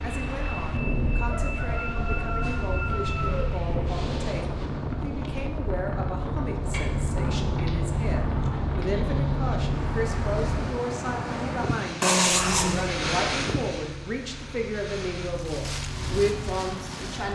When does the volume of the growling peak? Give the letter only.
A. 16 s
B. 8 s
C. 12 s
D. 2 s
C.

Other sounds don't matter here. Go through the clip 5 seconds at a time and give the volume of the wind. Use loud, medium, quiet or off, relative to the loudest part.
loud, loud, loud, medium.